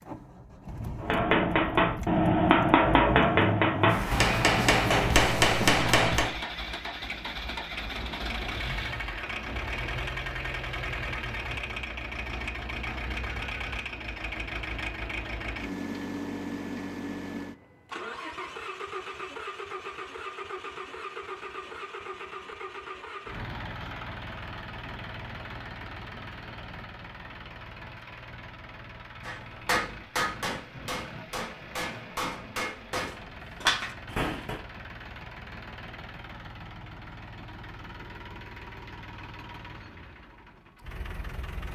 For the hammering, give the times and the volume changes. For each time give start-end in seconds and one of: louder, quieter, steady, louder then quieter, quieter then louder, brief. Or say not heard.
1.0-6.3 steady
29.2-34.6 quieter then louder.